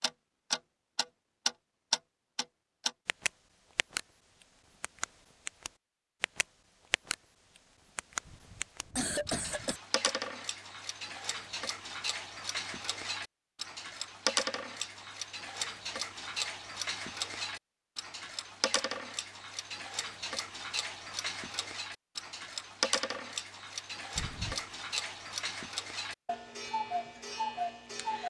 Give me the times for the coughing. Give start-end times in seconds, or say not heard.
8.2-9.8, 24.1-24.8.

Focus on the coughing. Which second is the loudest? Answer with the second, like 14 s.
9 s.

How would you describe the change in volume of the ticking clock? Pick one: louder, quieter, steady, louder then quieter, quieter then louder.
steady.